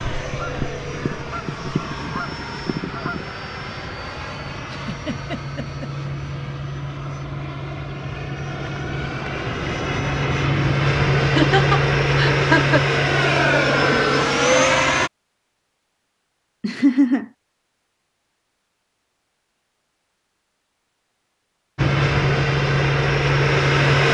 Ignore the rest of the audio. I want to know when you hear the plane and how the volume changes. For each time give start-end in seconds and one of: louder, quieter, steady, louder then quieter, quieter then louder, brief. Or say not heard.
0.0-15.1 louder
21.8-24.0 brief.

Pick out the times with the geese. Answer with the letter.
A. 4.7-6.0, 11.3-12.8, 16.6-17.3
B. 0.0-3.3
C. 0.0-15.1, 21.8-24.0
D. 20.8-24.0
B.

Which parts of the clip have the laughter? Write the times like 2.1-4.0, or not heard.
4.7-6.0, 11.3-12.8, 16.6-17.3.